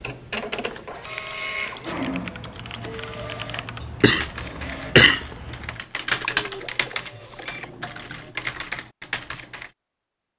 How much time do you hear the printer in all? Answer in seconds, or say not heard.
8 s.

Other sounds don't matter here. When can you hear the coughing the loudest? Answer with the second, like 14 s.
5 s.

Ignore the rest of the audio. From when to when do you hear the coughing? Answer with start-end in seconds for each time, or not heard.
3.8-5.5.